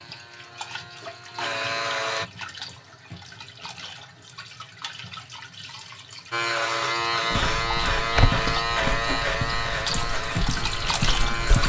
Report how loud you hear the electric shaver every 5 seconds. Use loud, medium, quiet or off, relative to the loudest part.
medium, loud, medium.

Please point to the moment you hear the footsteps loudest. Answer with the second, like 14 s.
8 s.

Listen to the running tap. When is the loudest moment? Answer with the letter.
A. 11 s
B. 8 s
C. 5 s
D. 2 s
A.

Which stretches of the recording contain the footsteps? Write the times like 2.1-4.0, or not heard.
7.3-11.6.